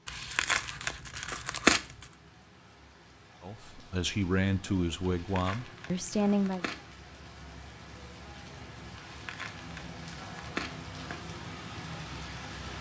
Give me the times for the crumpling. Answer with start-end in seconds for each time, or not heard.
0.1-2.0, 5.0-6.8, 8.9-11.2.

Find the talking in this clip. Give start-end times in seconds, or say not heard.
3.4-6.7.